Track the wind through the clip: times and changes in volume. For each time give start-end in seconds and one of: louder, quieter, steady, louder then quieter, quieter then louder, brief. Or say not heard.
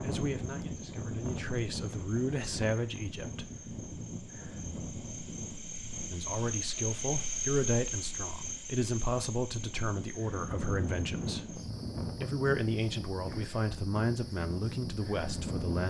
0.0-15.8 quieter then louder.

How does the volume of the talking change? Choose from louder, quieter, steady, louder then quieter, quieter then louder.
steady.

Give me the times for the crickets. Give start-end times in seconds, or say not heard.
0.0-15.8.